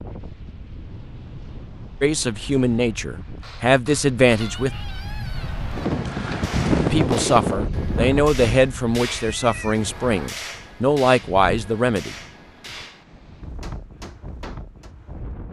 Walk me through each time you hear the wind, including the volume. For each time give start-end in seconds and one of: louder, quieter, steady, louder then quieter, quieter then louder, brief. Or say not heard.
0.0-15.4 louder then quieter.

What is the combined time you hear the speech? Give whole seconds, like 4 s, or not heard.
8 s.